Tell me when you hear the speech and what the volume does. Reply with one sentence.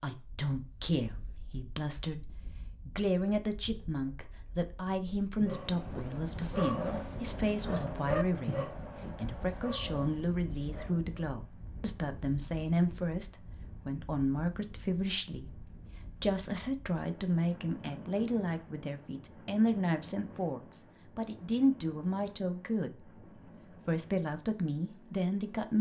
You can hear the speech from 0.0 to 25.7 s, at a steady volume.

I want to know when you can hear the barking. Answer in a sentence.
You can hear the barking from 5.4 to 11.1 s.